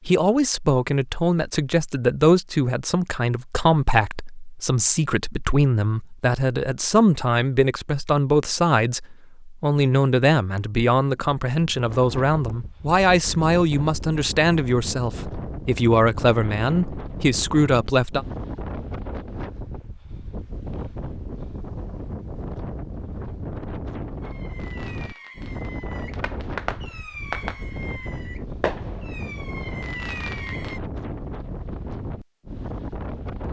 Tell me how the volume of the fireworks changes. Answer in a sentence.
The volume of the fireworks goes up.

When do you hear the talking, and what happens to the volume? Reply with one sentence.
The talking can be heard from 0.1 to 18.2 s, at a steady volume.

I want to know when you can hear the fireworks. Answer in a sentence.
You can hear the fireworks from 24.2 to 30.8 s.